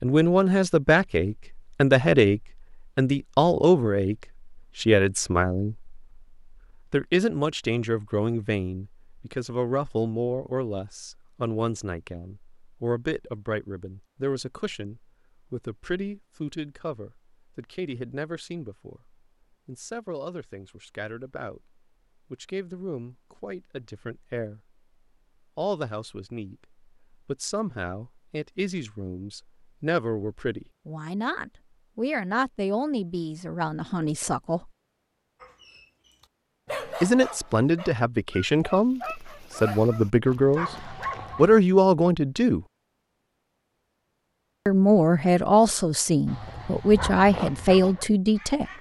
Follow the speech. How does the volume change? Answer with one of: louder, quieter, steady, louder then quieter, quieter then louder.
quieter then louder.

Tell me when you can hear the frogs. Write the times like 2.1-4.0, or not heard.
not heard.